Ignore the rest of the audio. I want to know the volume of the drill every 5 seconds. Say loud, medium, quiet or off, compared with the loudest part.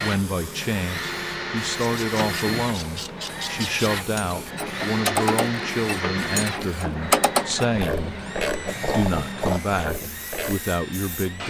loud, loud, medium.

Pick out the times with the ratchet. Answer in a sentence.
The ratchet can be heard from 1.8 to 10.6 s.